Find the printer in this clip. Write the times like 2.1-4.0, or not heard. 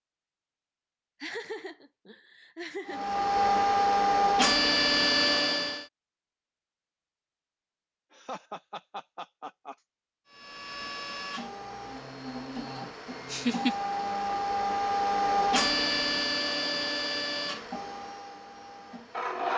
2.9-5.8, 10.3-19.5.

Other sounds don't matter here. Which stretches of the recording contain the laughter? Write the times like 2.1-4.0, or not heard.
1.2-3.1, 8.1-9.8, 13.3-13.8.